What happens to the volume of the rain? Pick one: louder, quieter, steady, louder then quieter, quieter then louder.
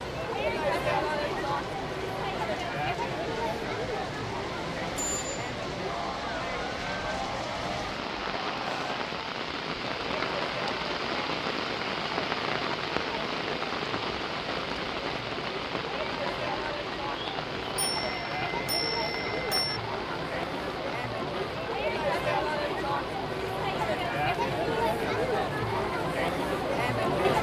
louder then quieter.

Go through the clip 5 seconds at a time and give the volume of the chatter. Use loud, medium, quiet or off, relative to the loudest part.
loud, medium, medium, medium, loud, loud.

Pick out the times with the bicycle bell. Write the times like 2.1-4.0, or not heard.
4.9-5.4, 17.8-19.8.